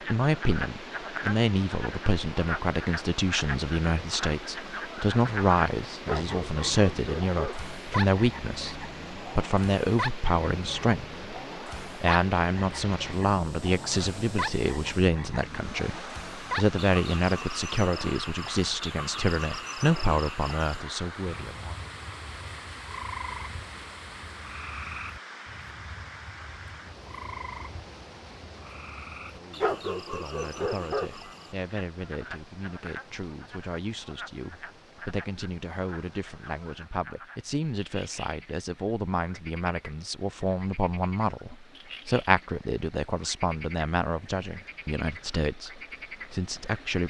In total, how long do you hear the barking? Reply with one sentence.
You can hear the barking for 3 seconds altogether.